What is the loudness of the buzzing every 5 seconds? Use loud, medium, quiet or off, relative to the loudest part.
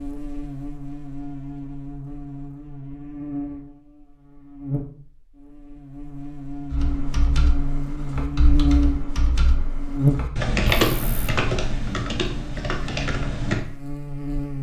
medium, loud, loud.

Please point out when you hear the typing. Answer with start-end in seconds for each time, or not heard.
6.7-13.6.